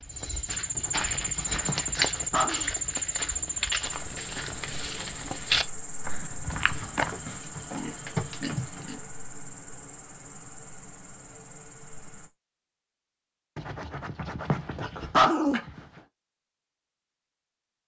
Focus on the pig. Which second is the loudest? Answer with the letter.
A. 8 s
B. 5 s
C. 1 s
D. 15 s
A.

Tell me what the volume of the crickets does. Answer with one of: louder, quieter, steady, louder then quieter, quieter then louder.
quieter.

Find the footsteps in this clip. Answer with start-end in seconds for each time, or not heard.
0.0-7.3.